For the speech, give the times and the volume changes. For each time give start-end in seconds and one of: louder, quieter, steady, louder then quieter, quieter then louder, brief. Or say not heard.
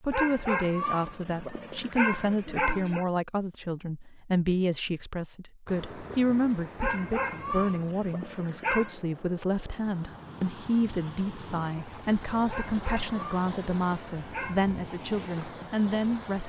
0.0-16.4 steady.